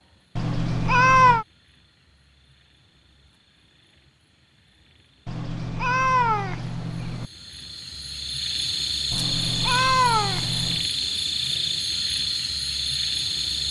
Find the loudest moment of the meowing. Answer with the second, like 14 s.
1 s.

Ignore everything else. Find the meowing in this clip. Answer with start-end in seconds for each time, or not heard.
0.3-1.4, 5.2-7.2, 9.1-10.8.